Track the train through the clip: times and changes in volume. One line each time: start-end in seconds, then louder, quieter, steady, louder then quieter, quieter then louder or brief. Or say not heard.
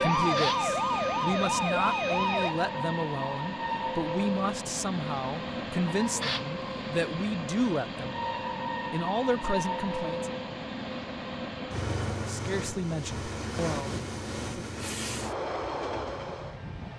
0.0-16.9 steady.